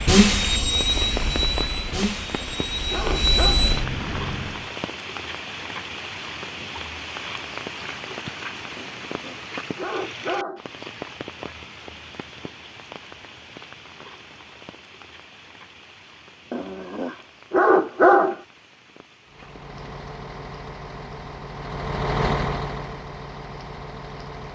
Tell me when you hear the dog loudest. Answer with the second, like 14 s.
18 s.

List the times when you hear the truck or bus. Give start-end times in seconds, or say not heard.
0.0-4.7, 19.3-24.5.